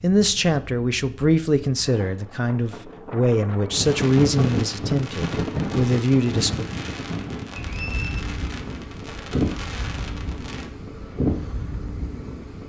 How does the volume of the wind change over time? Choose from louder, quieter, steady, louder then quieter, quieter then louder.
louder.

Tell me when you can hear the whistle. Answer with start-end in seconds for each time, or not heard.
7.7-8.2.